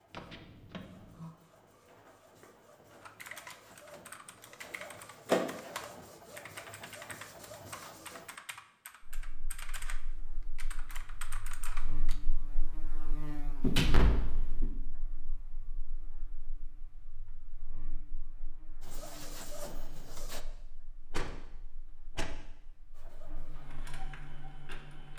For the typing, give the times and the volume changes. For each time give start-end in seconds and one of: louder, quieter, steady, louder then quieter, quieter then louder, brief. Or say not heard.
3.0-12.2 steady.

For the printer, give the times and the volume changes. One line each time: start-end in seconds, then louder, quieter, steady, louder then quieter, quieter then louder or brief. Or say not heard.
0.0-8.3 louder then quieter
18.8-20.4 brief
22.9-25.1 brief.